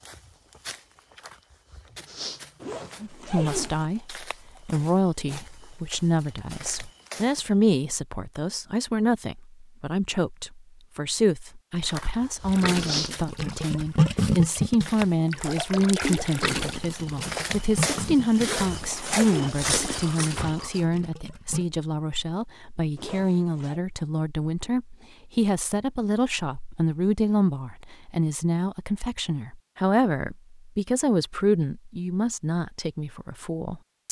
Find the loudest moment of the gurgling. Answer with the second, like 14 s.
14 s.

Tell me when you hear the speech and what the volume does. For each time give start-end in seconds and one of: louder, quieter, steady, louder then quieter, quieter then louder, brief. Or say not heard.
3.0-34.0 steady.